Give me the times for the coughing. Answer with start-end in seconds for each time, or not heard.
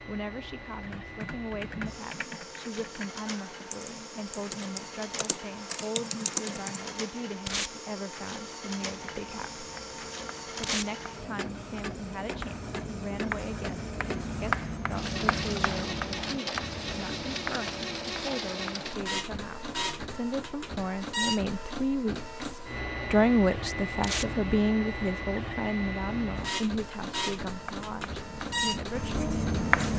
not heard.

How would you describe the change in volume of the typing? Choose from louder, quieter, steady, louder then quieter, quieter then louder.
quieter then louder.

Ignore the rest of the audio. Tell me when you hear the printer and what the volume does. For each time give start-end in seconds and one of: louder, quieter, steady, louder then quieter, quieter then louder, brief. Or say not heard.
0.0-29.9 louder.